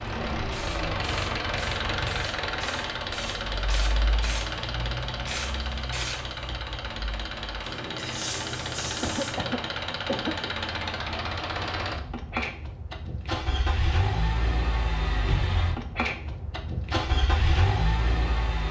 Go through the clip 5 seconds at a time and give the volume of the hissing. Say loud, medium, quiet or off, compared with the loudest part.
loud, loud, off, off.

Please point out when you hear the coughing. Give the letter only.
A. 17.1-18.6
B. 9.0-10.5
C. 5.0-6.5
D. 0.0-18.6
B.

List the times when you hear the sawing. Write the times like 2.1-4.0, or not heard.
not heard.